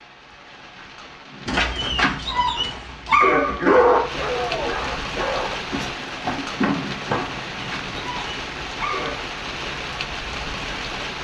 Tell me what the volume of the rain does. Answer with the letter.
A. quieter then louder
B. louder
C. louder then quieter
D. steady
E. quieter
B.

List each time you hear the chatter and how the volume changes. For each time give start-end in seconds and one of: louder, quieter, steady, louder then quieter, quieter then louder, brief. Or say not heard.
not heard.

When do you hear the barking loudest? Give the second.
4 s.